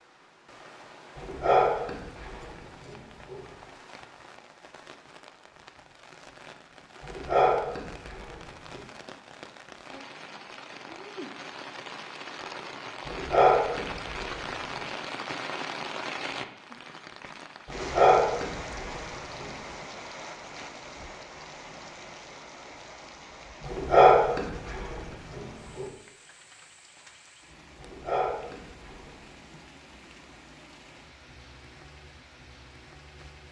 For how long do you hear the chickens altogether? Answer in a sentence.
You can't hear the chickens here.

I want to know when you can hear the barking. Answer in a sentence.
You can hear the barking from 1.1 to 3.4 s, from 7.0 to 8.8 s, from 13.1 to 14.8 s, from 17.6 to 19.4 s, from 23.6 to 25.9 s and from 27.8 to 29.1 s.